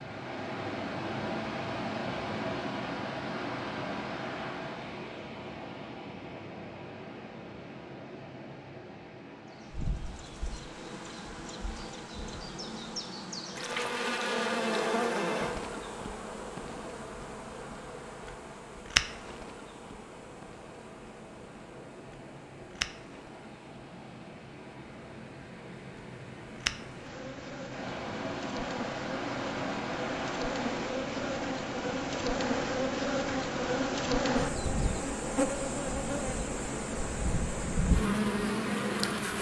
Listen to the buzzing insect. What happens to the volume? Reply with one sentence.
The loudness of the buzzing insect goes down, then up.